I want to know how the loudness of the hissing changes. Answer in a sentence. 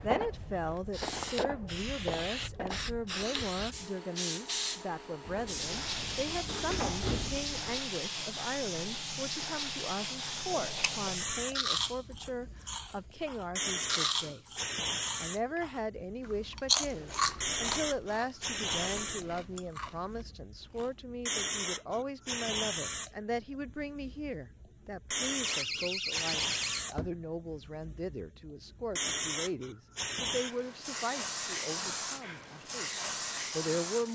The volume of the hissing stays about the same.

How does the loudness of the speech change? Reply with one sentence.
The loudness of the speech stays about the same.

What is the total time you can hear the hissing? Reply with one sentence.
You can hear the hissing for 34 seconds altogether.